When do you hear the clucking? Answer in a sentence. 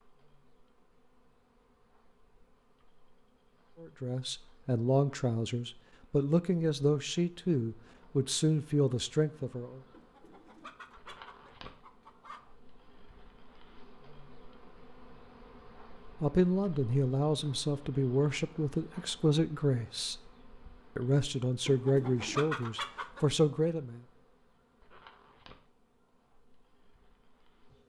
The clucking can be heard from 9.9 to 12.4 s and from 21.6 to 23.2 s.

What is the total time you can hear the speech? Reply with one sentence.
You can hear the speech for 13 seconds altogether.